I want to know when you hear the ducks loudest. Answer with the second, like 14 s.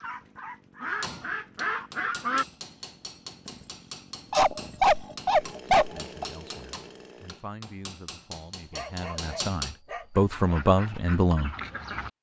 2 s.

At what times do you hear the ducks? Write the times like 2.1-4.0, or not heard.
0.0-2.5, 10.2-12.1.